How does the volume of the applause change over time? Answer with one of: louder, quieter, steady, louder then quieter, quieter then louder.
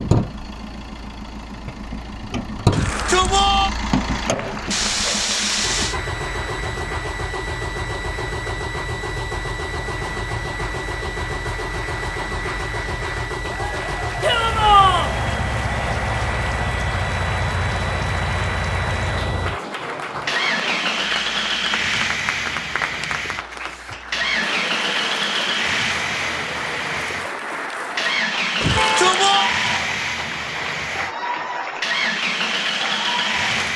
louder.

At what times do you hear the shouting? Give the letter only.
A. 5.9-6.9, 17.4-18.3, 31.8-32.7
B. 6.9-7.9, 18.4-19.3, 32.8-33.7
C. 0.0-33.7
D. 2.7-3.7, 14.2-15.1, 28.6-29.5
D.